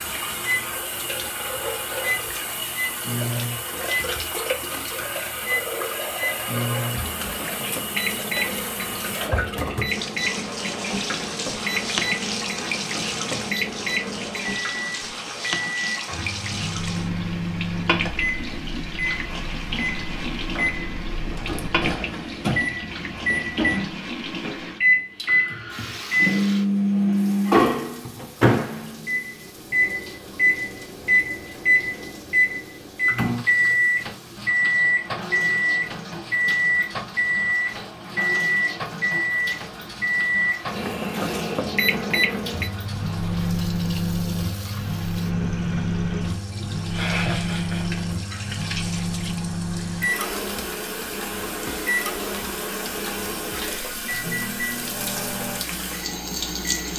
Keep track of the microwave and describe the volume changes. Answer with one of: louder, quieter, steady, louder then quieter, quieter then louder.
louder then quieter.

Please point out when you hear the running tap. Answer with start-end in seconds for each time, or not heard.
0.0-56.9.